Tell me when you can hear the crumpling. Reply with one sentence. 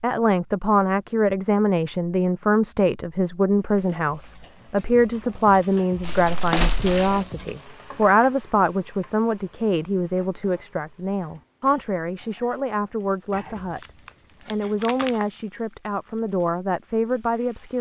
The crumpling can be heard from 6.0 to 7.2 s and from 13.3 to 15.2 s.